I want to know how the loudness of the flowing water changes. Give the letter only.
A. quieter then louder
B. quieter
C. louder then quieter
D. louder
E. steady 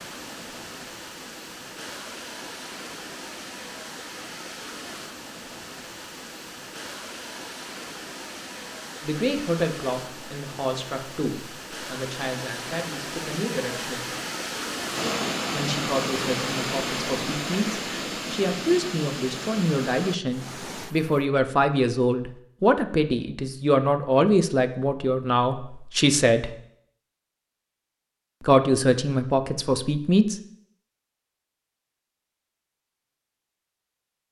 D.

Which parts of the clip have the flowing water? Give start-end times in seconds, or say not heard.
0.0-21.2.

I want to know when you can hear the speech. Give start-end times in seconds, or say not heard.
9.0-14.1, 15.5-26.6, 28.4-30.4.